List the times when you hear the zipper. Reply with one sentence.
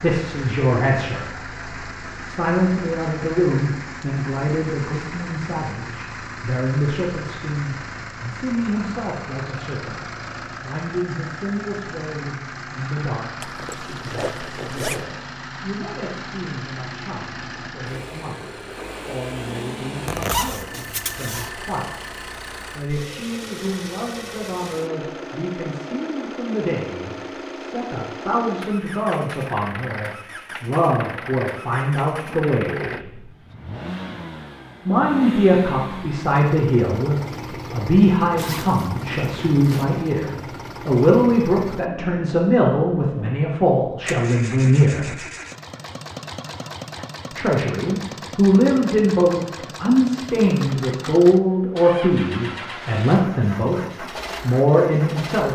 The zipper can be heard from 13.4 to 15.1 s, from 20.1 to 21.5 s and from 38.4 to 39.9 s.